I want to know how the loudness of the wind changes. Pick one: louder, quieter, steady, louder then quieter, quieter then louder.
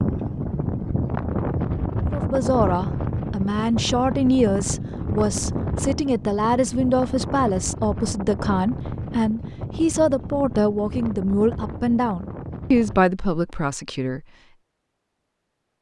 quieter.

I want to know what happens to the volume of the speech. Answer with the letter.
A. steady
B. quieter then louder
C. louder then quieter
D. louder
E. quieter
A.